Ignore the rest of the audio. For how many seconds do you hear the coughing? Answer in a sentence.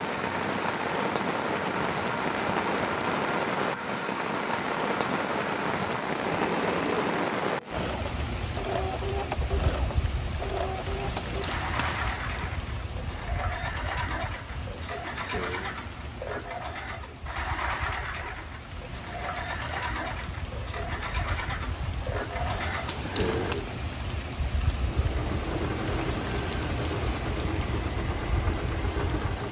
You can hear the coughing for 2 seconds altogether.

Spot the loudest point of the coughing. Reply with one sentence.
The volume of the coughing peaks at 23 seconds.